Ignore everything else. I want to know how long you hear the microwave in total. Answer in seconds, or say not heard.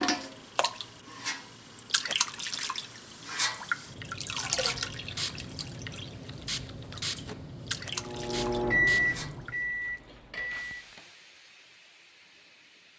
3 s.